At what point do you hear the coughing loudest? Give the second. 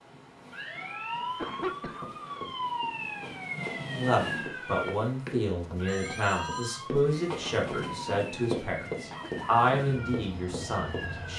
2 s.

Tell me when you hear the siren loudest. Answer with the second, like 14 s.
3 s.